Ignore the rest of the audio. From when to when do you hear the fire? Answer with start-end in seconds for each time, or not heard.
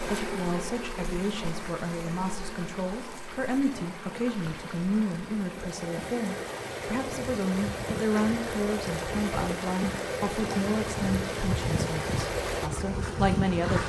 not heard.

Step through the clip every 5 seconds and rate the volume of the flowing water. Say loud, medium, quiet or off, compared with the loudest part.
medium, loud, loud.